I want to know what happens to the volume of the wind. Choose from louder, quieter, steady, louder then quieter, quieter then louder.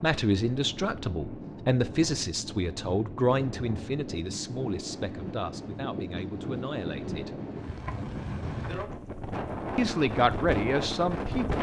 louder.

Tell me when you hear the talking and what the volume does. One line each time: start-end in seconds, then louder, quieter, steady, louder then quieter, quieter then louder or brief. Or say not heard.
0.0-7.4 quieter
9.8-11.5 brief.